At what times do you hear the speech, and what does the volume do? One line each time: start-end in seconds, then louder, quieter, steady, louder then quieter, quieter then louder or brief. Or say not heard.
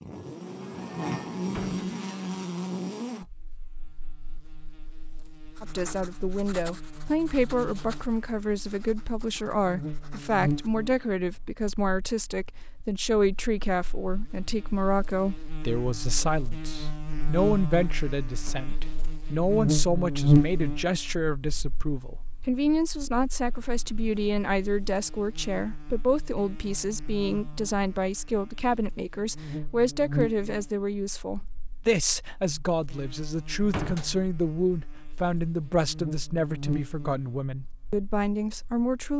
5.6-39.1 steady.